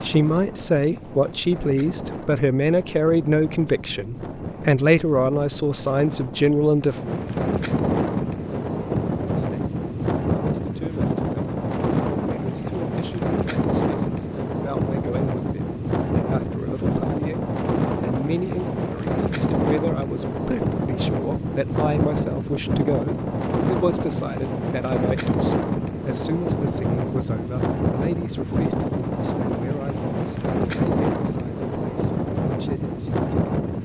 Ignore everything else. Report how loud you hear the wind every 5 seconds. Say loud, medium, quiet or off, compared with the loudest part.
medium, loud, loud, loud, loud, loud, loud.